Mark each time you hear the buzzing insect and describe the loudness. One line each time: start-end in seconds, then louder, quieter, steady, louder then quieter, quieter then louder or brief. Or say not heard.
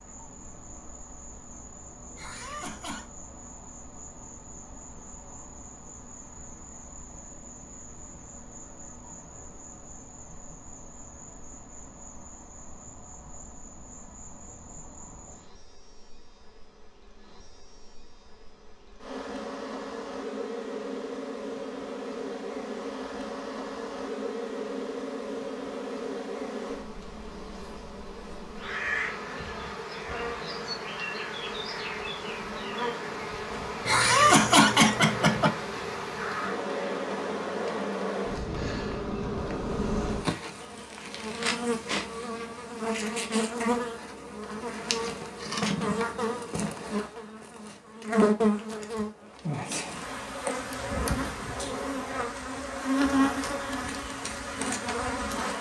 0.0-55.5 louder.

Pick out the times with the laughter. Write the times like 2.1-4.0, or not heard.
2.1-3.1, 33.9-35.5.